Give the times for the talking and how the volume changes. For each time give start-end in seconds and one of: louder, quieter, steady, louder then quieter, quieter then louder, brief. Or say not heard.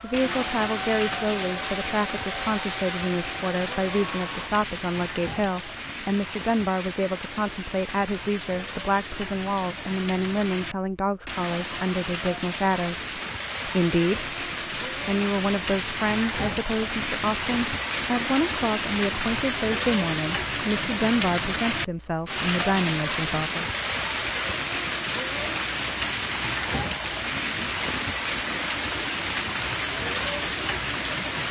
0.0-23.6 steady.